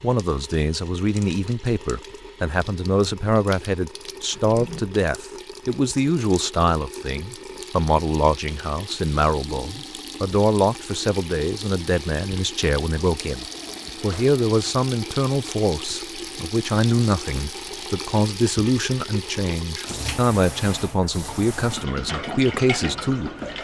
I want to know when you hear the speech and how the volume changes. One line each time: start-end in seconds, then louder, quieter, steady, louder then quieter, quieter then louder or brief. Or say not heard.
0.0-23.3 steady.